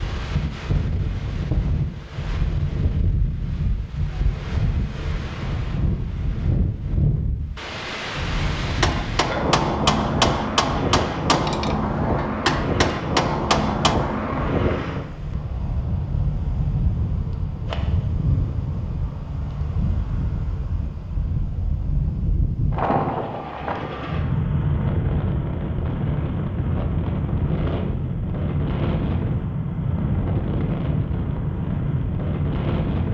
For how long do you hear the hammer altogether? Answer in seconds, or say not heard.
5 s.